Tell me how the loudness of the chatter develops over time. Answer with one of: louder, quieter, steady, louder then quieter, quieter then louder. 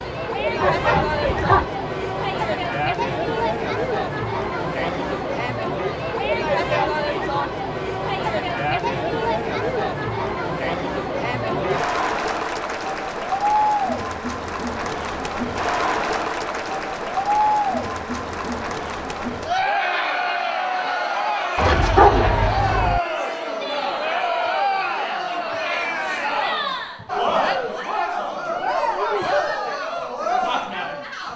steady.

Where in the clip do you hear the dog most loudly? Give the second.
22 s.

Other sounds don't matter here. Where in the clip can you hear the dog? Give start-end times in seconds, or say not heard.
0.6-1.6, 21.6-23.0.